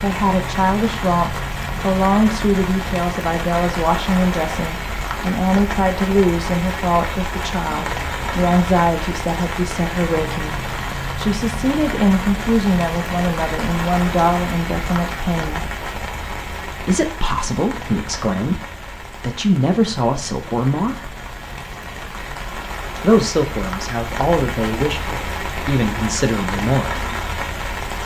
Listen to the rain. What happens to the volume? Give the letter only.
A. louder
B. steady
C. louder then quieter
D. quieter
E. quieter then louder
E.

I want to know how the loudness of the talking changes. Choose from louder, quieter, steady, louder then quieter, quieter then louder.
steady.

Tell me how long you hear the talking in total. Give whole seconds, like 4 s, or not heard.
24 s.